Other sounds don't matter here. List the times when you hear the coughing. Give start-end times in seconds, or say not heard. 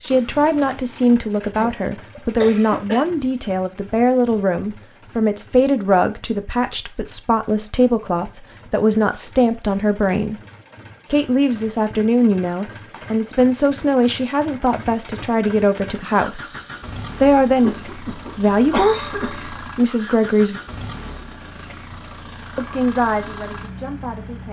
1.6-3.2, 12.4-13.1, 17.6-19.6.